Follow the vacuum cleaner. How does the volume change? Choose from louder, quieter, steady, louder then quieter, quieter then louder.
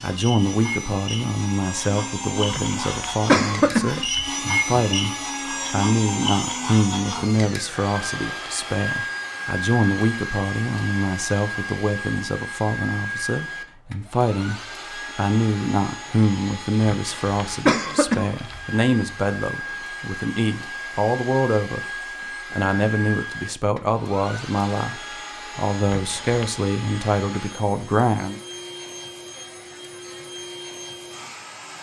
quieter.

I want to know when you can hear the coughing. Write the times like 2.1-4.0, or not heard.
2.5-4.3, 16.9-18.6, 25.9-26.6.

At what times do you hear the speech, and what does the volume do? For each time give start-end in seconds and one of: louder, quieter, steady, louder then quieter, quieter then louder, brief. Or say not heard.
0.0-21.8 steady
22.5-28.4 steady.